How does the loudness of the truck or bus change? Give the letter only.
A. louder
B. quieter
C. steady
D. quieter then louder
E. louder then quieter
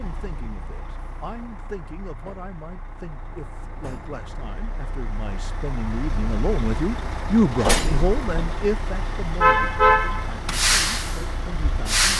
A.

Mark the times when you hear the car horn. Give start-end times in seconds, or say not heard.
9.4-10.3.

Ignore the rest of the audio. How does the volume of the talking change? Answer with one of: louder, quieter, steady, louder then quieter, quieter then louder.
louder then quieter.